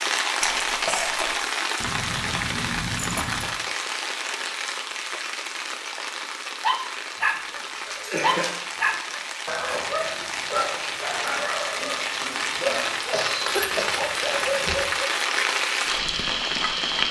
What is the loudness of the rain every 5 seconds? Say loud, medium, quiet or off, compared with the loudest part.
loud, medium, loud, loud.